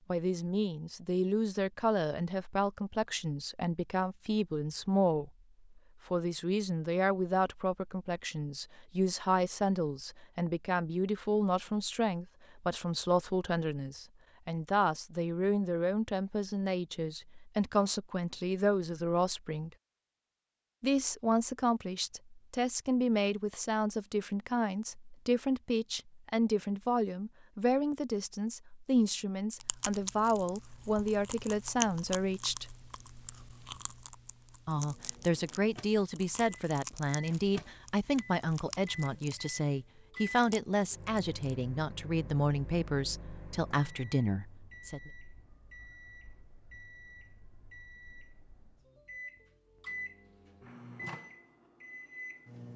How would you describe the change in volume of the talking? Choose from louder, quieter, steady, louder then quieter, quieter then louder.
steady.